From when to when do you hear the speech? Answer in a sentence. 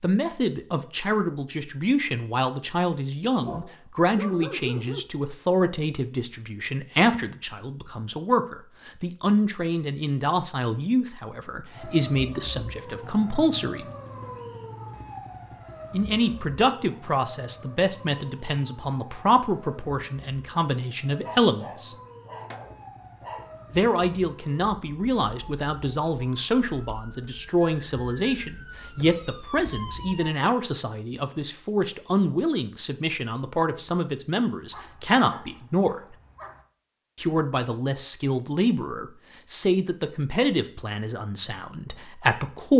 The speech can be heard from 0.0 to 13.9 s, from 15.9 to 21.9 s, from 23.7 to 36.0 s and from 37.1 to 42.7 s.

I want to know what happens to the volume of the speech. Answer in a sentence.
The volume of the speech stays about the same.